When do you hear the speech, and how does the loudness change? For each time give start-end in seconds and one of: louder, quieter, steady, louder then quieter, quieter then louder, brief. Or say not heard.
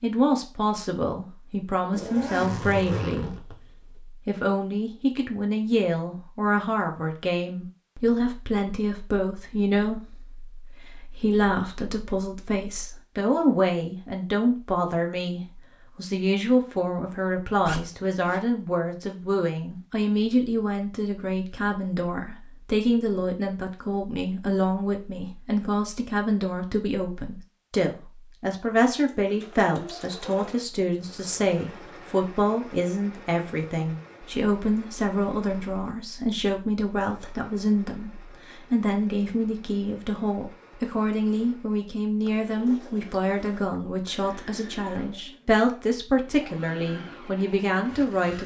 0.0-48.4 steady.